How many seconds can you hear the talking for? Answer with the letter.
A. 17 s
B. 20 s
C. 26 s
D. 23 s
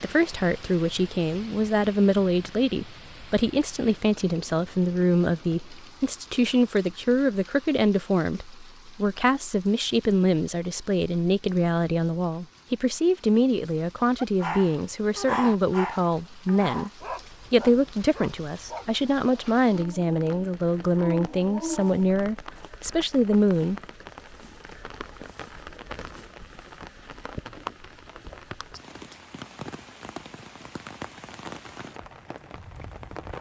D.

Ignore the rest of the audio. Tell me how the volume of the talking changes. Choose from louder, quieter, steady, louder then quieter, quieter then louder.
steady.